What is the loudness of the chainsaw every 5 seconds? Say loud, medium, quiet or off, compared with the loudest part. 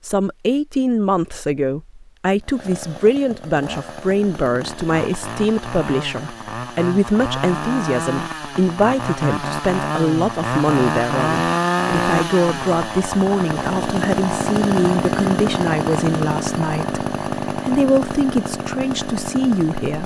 quiet, medium, loud, loud.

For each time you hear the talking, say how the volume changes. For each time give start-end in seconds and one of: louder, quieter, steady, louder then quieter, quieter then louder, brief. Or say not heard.
0.0-20.0 steady.